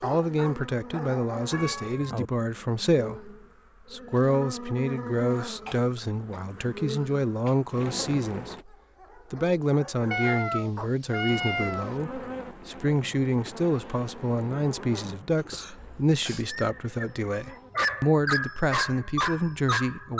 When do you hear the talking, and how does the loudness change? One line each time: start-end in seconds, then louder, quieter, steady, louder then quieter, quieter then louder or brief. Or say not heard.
0.0-20.1 steady.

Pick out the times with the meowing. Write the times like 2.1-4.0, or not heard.
1.5-2.3, 10.1-11.9, 15.8-16.5.